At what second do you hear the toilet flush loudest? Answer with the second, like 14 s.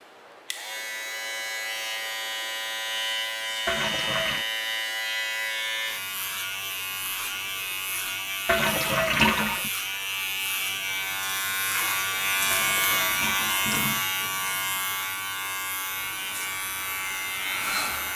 9 s.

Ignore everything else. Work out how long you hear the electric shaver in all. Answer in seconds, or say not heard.
18 s.